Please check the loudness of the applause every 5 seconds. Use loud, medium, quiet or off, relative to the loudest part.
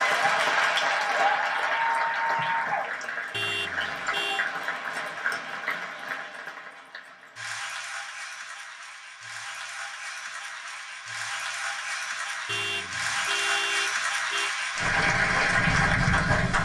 loud, quiet, medium, loud.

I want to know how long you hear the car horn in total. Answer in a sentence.
You can hear the car horn for 3 seconds altogether.